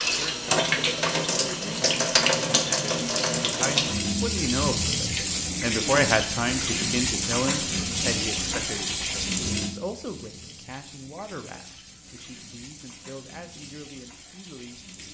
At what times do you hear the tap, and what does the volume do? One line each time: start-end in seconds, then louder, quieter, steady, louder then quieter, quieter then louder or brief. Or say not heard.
0.0-15.0 quieter.